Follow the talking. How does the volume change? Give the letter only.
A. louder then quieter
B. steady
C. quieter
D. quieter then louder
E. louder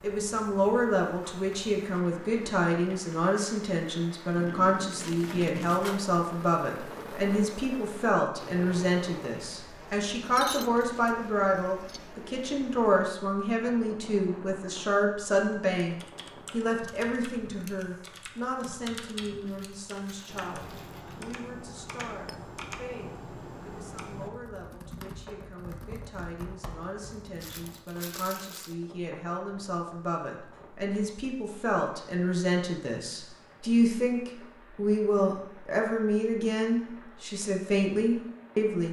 D.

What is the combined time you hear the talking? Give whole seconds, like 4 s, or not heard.
39 s.